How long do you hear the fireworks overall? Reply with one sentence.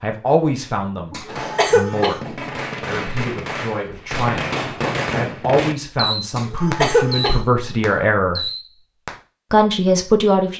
You can hear the fireworks for 8 seconds altogether.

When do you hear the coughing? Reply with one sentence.
The coughing can be heard from 1.1 to 2.2 s and from 6.3 to 7.4 s.